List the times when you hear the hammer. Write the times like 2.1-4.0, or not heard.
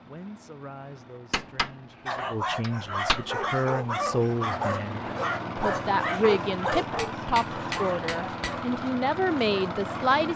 1.3-3.2, 7.0-8.6.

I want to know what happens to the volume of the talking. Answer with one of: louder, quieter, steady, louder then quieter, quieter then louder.
louder.